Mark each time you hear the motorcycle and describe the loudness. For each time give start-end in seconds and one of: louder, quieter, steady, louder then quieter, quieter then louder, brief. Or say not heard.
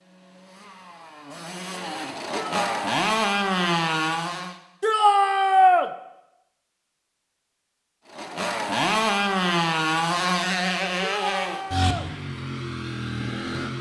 0.1-4.5 louder
8.1-13.7 quieter.